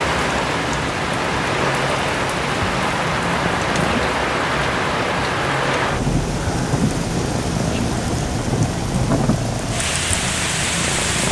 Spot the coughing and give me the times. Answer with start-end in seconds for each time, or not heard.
not heard.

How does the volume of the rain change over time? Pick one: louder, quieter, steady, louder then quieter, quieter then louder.
steady.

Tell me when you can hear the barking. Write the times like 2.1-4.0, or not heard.
not heard.